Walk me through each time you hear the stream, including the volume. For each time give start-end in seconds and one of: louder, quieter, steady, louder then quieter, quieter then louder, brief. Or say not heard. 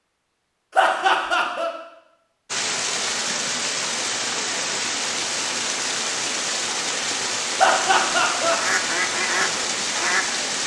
2.5-10.6 steady.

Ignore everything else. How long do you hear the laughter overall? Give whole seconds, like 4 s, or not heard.
2 s.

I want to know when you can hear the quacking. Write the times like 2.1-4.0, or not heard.
8.6-10.6.